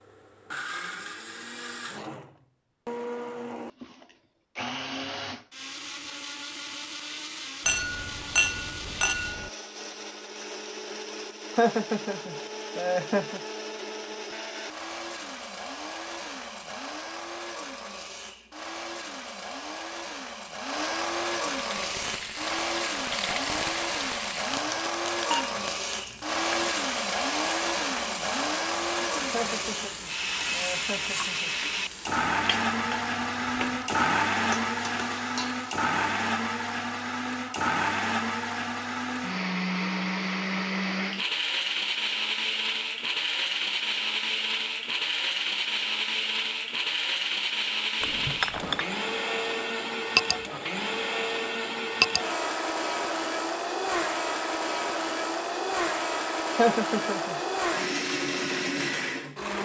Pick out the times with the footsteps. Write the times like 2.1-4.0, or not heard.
not heard.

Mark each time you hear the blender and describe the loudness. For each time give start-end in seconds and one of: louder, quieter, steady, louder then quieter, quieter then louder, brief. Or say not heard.
0.0-59.6 louder.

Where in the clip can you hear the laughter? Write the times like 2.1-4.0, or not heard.
11.6-13.4, 29.3-31.6, 56.5-57.4.